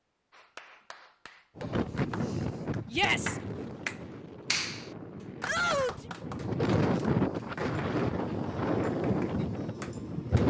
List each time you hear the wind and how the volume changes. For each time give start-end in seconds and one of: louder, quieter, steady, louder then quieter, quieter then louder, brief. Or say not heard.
1.6-10.4 quieter then louder.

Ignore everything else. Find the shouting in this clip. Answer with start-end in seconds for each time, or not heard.
2.9-3.4, 5.5-6.1.